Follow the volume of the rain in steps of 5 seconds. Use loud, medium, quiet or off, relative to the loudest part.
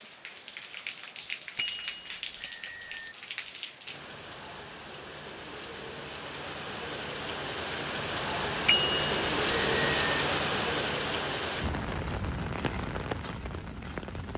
medium, loud, loud.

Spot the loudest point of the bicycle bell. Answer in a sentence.
The loudest moment of the bicycle bell is at 10 seconds.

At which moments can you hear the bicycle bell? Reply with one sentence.
The bicycle bell can be heard from 1.6 to 3.1 s and from 8.7 to 10.2 s.